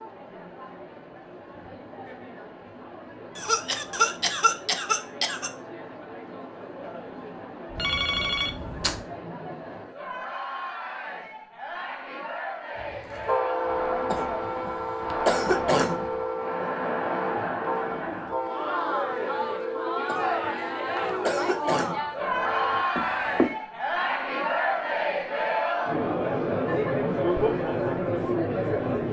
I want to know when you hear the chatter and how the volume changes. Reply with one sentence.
You can hear the chatter from 0.0 to 29.0 s, getting louder.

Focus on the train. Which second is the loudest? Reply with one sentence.
The volume of the train peaks at 14 seconds.